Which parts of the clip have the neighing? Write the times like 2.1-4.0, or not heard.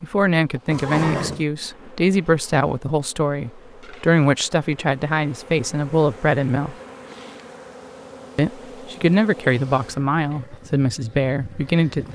0.7-1.4.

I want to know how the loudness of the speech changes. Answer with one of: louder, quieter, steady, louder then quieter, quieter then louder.
steady.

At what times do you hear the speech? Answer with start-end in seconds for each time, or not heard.
0.0-6.8, 8.3-12.0.